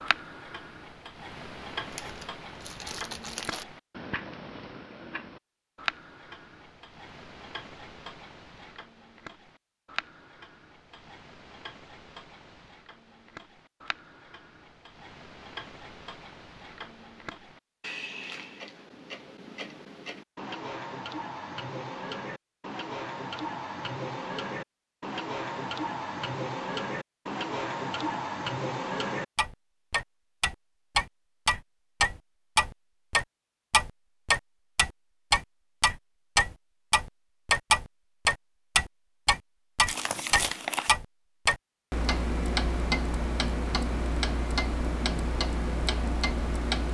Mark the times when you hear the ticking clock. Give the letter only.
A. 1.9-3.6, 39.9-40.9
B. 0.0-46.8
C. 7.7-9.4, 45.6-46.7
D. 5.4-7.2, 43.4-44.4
B.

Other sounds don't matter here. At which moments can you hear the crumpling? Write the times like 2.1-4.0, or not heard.
1.9-3.6, 39.9-40.9.